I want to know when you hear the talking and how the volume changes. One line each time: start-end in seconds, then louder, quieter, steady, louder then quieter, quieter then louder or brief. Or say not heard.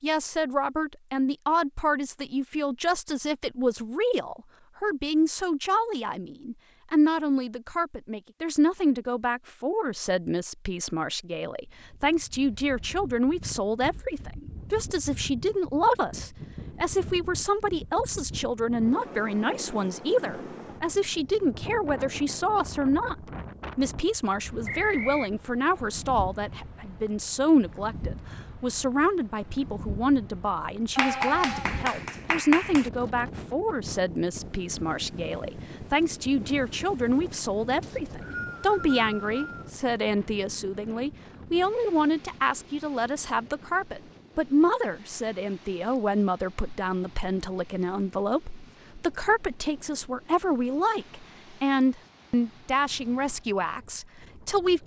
0.0-54.8 steady.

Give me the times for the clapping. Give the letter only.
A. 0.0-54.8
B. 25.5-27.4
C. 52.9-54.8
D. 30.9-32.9
D.